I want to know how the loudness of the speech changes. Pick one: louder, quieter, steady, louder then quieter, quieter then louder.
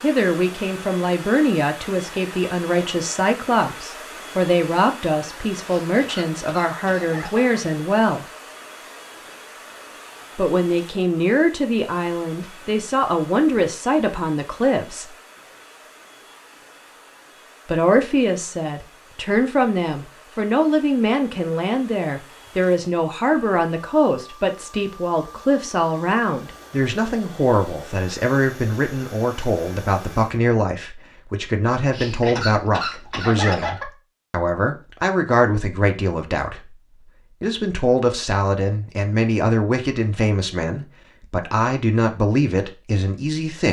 steady.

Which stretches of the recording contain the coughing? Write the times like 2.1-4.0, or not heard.
5.7-7.6, 31.9-33.9.